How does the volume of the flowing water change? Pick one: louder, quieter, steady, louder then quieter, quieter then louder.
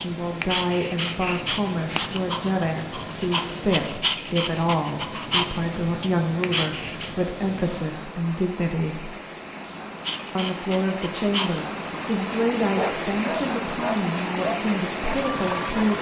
louder.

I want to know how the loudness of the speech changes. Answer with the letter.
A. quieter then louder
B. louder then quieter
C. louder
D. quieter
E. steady
E.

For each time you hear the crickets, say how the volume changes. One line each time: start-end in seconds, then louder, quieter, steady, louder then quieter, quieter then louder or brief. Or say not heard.
not heard.